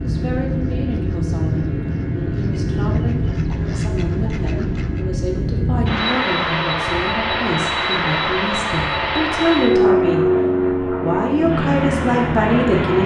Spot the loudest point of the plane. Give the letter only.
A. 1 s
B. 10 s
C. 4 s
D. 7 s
B.